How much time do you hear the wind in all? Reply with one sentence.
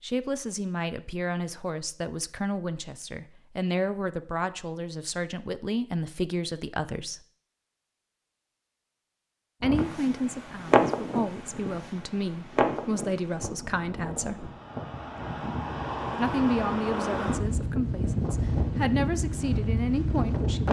You can hear the wind for 11 seconds altogether.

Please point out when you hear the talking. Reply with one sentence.
You can hear the talking from 0.0 to 7.2 s, from 9.6 to 14.5 s and from 16.1 to 20.6 s.